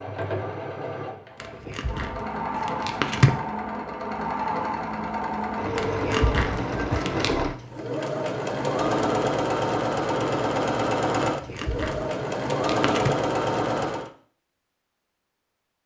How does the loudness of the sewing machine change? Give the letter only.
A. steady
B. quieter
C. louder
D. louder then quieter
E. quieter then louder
C.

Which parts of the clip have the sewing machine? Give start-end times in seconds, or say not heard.
0.0-14.1.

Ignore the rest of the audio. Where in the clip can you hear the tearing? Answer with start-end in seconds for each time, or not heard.
1.4-3.4, 5.8-7.4, 11.3-13.1.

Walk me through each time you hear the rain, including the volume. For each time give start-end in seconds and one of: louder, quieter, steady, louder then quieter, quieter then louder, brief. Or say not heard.
not heard.